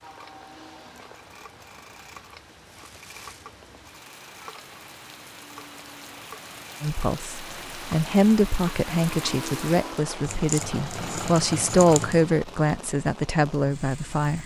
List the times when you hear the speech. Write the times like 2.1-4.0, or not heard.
6.8-14.4.